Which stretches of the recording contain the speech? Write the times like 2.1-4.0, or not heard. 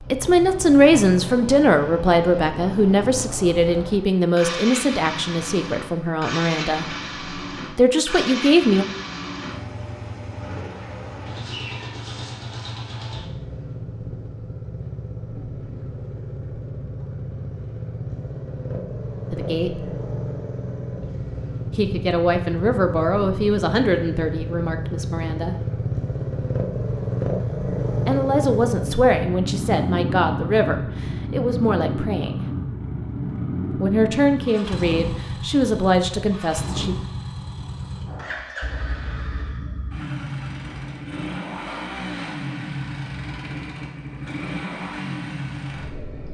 0.1-6.8, 7.8-8.8, 19.3-19.9, 21.8-25.6, 28.1-32.5, 33.8-37.0.